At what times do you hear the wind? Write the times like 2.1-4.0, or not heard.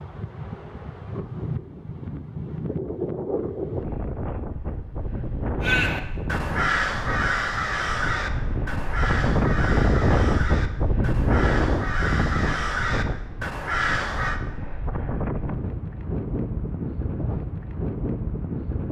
0.0-18.8.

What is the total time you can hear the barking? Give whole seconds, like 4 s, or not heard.
not heard.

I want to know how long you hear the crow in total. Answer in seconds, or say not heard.
9 s.